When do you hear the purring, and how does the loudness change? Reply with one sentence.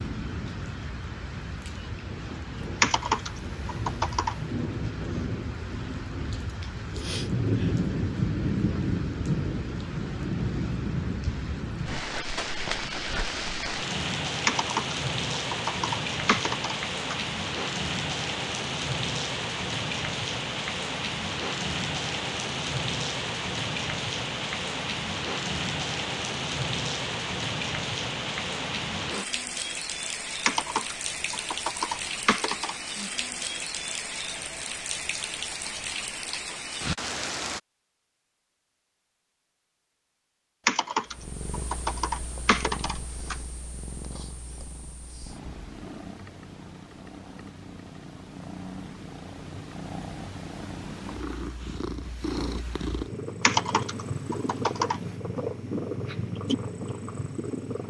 You can hear the purring from 41.1 to 57.8 s, getting louder.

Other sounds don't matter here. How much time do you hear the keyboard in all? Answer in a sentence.
You can hear the keyboard for 11 seconds altogether.